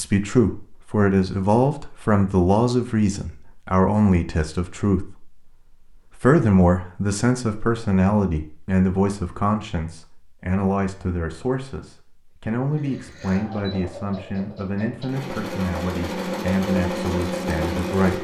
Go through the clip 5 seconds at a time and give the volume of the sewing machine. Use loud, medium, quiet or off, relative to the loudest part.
off, off, quiet, loud.